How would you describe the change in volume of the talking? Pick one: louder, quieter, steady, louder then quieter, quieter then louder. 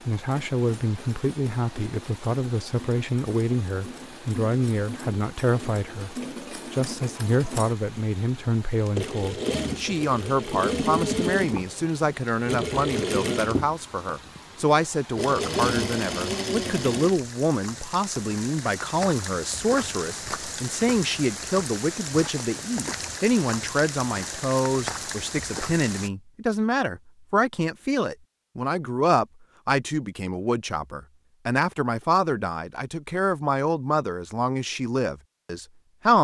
steady.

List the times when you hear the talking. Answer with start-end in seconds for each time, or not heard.
0.1-36.1.